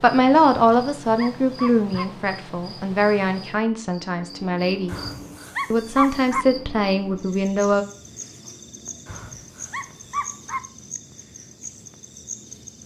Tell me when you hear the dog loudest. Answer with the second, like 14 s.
6 s.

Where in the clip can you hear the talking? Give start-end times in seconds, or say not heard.
0.0-5.0, 5.7-7.8.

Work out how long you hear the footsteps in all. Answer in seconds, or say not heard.
not heard.